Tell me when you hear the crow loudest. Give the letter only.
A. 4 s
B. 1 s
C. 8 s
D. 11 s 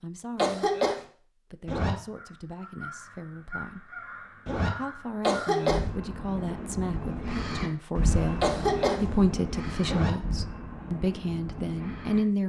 C.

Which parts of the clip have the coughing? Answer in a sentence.
You can hear the coughing from 0.3 to 1.0 s, from 5.2 to 5.8 s and from 8.4 to 9.0 s.